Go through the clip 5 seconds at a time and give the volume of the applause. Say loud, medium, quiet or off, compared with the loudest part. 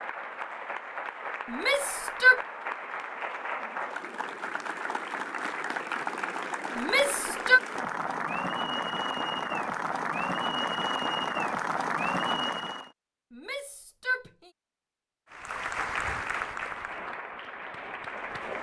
medium, loud, loud, medium.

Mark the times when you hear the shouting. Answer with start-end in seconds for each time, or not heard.
1.5-2.4, 6.8-7.6, 13.3-14.5.